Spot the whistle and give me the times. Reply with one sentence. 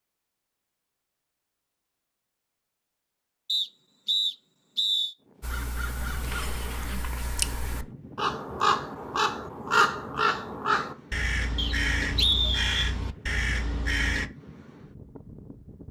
You can hear the whistle from 3.5 to 5.2 s and from 11.6 to 12.9 s.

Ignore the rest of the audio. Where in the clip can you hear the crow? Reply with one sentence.
You can hear the crow from 5.4 to 14.3 s.